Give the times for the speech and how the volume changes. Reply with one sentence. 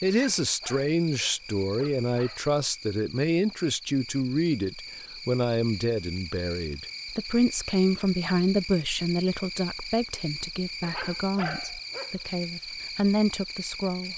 The speech can be heard from 0.0 to 14.1 s, at a steady volume.